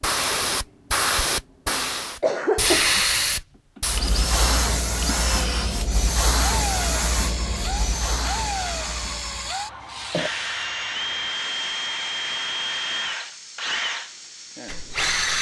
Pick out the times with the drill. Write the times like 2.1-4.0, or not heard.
3.8-15.3.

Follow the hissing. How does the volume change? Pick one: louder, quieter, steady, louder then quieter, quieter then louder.
quieter.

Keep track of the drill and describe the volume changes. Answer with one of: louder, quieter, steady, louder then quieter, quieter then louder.
steady.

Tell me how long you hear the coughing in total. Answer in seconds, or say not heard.
2 s.